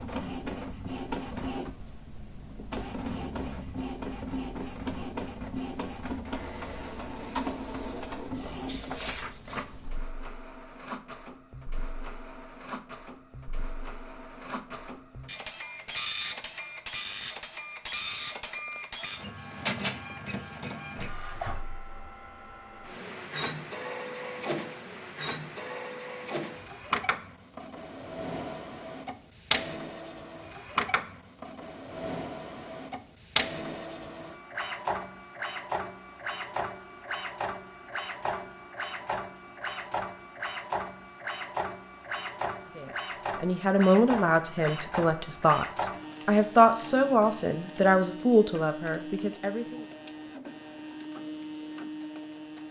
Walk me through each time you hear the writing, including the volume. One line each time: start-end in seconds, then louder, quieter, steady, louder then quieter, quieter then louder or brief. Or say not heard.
not heard.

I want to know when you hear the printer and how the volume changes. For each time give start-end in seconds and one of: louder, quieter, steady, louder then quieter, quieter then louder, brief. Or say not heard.
0.0-52.6 steady.